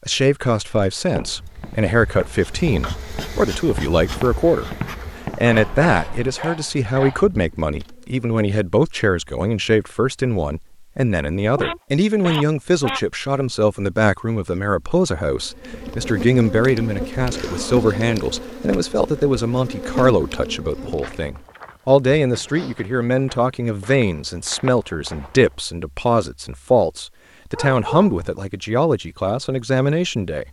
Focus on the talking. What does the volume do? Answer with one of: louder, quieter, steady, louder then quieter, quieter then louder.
steady.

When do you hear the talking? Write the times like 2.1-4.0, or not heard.
0.1-4.7, 5.3-30.4.